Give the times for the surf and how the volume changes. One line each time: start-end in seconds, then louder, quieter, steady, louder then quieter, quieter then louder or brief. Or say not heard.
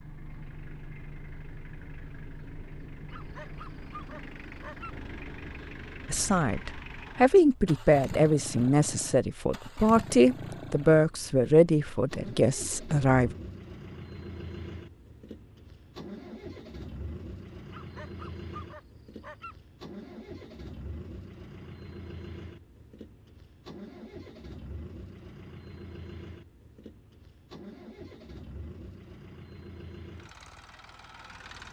not heard.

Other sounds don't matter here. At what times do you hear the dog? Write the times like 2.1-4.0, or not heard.
3.1-5.0, 17.7-19.6.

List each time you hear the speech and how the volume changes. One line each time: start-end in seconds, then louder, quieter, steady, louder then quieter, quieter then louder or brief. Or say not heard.
6.0-13.3 quieter.